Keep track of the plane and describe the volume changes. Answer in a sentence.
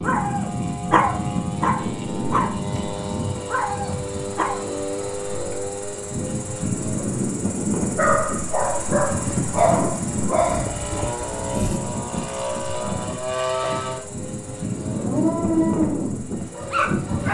The loudness of the plane stays about the same.